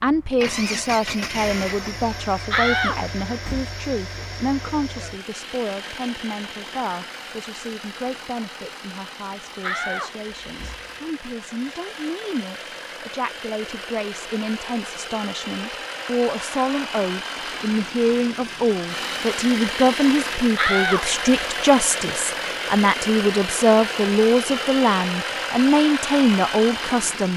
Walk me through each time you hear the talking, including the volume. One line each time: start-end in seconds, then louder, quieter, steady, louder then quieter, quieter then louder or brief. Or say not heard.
0.0-27.3 quieter then louder.